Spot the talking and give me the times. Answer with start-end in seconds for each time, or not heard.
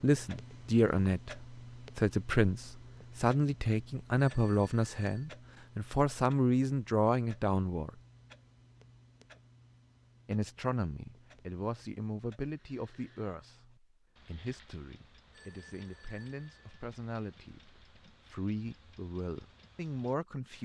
0.0-7.9, 10.2-20.5.